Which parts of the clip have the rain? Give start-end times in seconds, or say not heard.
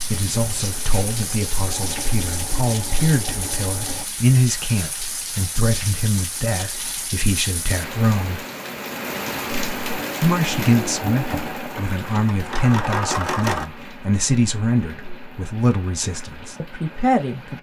0.0-17.5.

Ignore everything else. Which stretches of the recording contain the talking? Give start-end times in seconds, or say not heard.
0.0-8.4, 10.2-17.5.